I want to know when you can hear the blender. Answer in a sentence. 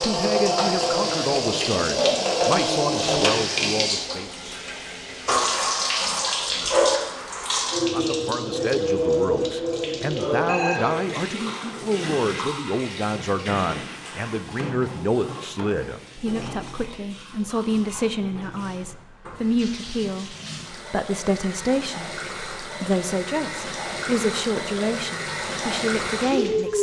The blender can't be heard in this clip.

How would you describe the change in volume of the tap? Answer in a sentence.
The loudness of the tap goes down, then up.